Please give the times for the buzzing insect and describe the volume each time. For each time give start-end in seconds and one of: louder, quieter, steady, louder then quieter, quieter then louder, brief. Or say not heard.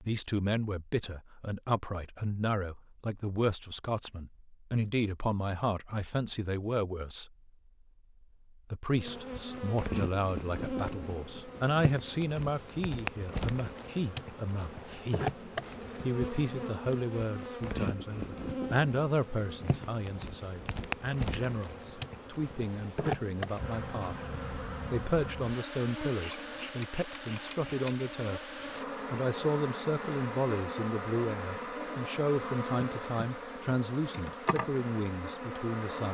8.9-36.0 steady.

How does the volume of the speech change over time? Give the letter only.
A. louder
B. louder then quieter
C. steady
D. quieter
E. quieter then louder
C.